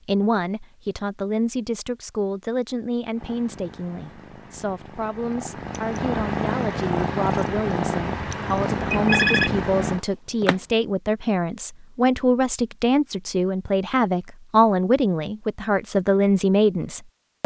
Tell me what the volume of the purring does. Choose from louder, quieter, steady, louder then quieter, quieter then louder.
louder.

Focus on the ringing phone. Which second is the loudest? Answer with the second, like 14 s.
9 s.